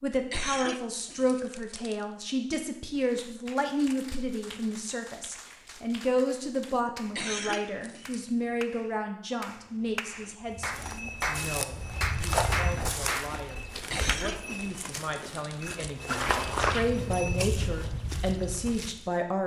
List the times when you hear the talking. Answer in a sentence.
You can hear the talking from 0.0 to 19.4 s.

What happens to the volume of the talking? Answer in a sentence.
The volume of the talking goes down, then up.